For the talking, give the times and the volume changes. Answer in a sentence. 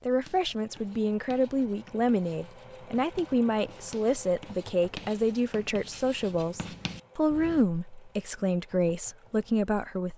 The talking can be heard from 0.1 to 10.1 s, at a steady volume.